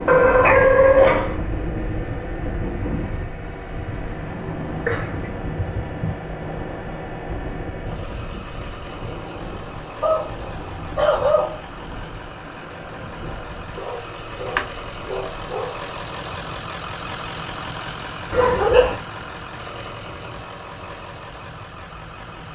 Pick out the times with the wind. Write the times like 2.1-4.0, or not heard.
0.0-22.5.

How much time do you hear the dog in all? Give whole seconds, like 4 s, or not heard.
7 s.